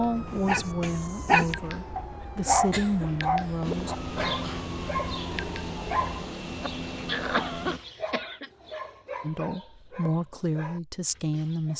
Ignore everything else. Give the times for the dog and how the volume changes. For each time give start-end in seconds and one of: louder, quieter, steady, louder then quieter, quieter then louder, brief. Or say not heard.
0.5-11.7 quieter.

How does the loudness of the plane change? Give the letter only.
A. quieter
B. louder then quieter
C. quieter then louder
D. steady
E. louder
D.